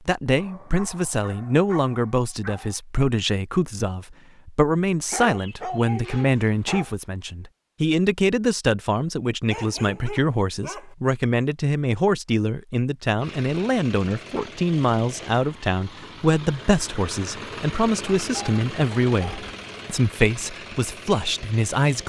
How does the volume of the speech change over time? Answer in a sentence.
The volume of the speech stays about the same.